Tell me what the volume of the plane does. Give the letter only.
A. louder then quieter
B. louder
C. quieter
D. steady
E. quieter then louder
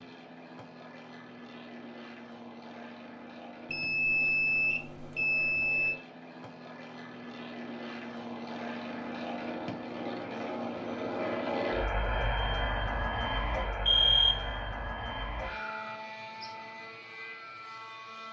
A.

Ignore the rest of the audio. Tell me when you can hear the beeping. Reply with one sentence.
You can hear the beeping from 3.7 to 6.0 s and from 13.8 to 14.6 s.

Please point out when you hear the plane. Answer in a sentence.
The plane can be heard from 0.0 to 18.2 s.